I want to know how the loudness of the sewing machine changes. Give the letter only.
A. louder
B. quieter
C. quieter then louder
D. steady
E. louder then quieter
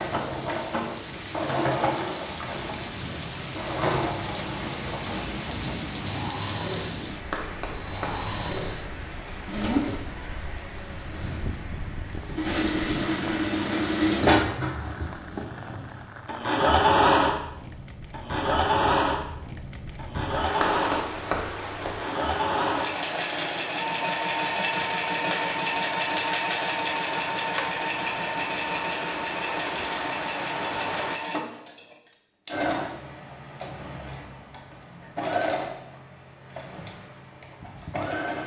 E.